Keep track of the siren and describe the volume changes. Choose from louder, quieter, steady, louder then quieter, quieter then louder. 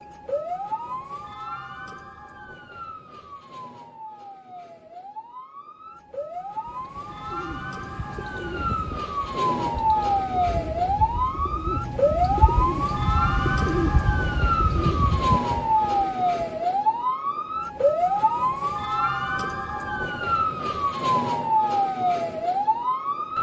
louder.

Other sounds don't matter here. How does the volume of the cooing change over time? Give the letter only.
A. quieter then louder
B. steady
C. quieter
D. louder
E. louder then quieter
D.